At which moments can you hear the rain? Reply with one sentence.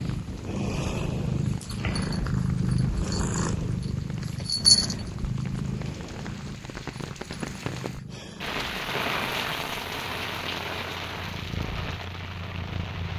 You can hear the rain from 0.0 to 13.1 s.